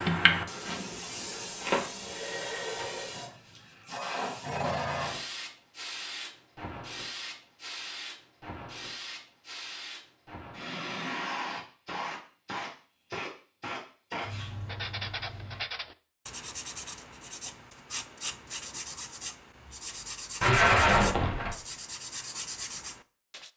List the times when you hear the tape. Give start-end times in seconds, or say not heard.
20.4-21.6.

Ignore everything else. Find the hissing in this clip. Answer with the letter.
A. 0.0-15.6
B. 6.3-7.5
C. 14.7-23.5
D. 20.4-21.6
A.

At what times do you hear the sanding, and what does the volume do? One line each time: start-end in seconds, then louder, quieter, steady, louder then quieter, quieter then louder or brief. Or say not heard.
14.7-23.5 steady.